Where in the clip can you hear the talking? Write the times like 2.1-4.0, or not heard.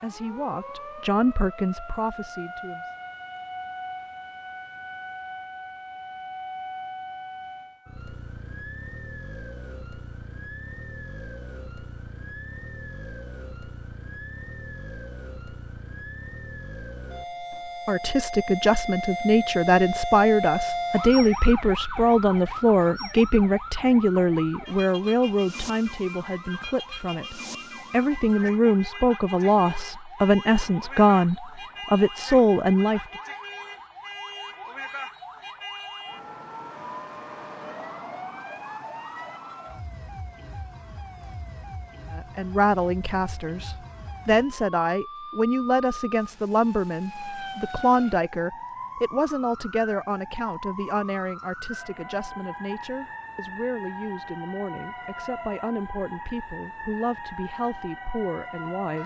0.0-2.9, 17.9-33.0, 42.1-59.0.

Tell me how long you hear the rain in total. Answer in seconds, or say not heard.
not heard.